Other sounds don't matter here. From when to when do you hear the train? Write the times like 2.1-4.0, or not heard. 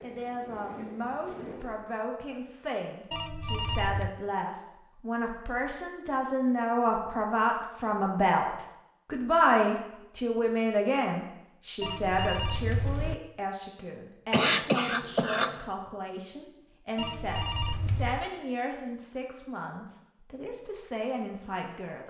0.0-2.0.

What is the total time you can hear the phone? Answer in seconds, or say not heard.
4 s.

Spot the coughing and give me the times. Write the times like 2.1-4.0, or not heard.
14.3-15.6.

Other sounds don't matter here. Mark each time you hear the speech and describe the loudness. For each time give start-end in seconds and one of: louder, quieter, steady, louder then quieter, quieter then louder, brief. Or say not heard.
0.0-22.0 louder then quieter.